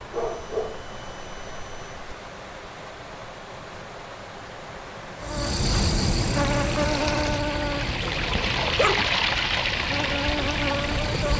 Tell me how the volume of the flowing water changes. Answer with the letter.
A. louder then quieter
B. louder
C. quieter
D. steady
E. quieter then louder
B.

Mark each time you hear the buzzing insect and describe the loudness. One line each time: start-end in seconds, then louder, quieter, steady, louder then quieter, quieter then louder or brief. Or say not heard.
5.2-11.3 quieter then louder.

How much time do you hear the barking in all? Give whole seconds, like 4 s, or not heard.
3 s.